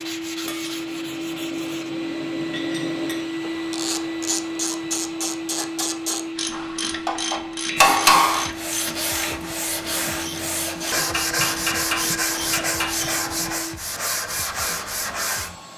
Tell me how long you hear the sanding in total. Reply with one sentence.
You can hear the sanding for 10 seconds altogether.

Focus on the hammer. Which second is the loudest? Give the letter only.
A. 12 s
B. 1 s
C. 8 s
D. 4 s
C.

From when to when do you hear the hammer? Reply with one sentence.
The hammer can be heard from 0.4 to 3.4 s, from 6.5 to 8.4 s and from 10.9 to 12.9 s.